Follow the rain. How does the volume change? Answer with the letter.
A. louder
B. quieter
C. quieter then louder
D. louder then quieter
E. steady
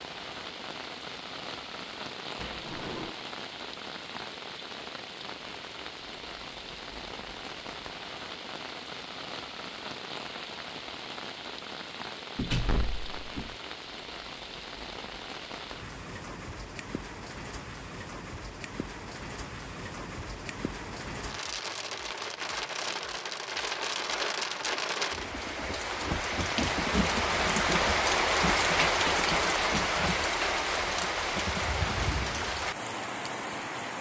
A.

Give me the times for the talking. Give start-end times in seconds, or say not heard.
not heard.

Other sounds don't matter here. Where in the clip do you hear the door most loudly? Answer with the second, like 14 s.
13 s.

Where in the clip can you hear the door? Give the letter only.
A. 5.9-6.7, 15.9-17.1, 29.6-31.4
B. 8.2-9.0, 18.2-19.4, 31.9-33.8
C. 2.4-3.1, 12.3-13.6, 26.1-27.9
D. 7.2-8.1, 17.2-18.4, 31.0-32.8
C.